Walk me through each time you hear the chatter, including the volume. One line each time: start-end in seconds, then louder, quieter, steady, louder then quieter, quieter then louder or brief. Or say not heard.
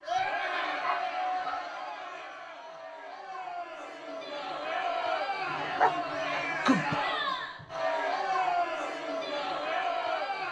0.0-10.4 quieter then louder.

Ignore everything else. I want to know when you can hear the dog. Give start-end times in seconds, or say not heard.
0.8-1.6, 5.5-7.0.